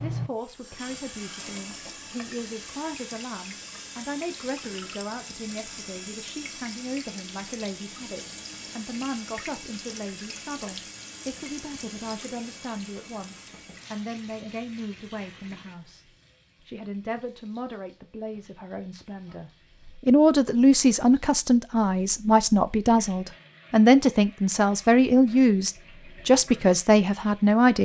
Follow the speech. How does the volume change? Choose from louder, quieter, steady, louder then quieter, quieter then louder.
louder.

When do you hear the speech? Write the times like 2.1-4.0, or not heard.
0.0-27.7.